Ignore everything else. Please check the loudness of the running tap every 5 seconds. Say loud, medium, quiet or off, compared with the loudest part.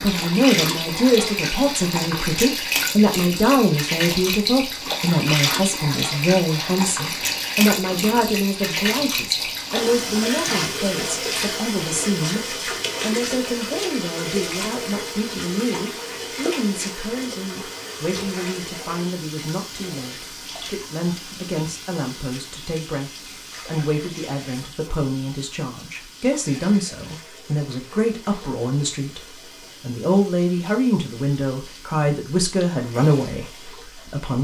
loud, loud, loud, medium, quiet, quiet, quiet.